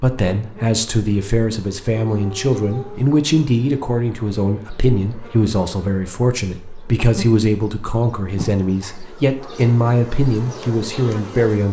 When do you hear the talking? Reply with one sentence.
You can hear the talking from 0.0 to 11.6 s.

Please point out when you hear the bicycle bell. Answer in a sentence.
You can't hear the bicycle bell here.